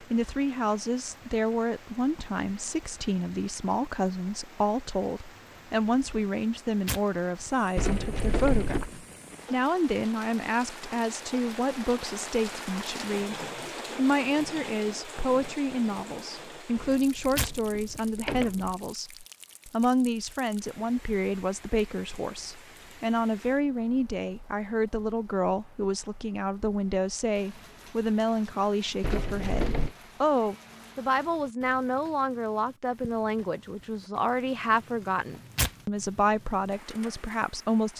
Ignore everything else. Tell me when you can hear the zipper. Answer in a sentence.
The zipper can't be heard in this clip.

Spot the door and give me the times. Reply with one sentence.
The door can be heard from 7.8 to 8.9 s, from 16.8 to 18.8 s and from 29.0 to 29.9 s.